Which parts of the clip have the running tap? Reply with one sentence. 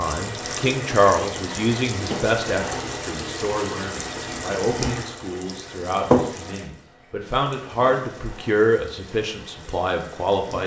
The running tap can be heard from 0.0 to 10.6 s.